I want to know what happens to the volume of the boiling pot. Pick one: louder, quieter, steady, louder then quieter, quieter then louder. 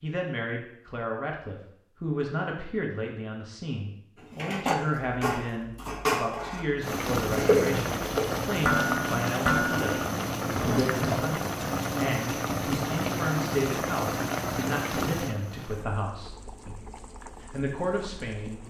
quieter.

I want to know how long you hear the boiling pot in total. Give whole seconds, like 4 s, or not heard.
12 s.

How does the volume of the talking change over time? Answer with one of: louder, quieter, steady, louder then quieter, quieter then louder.
steady.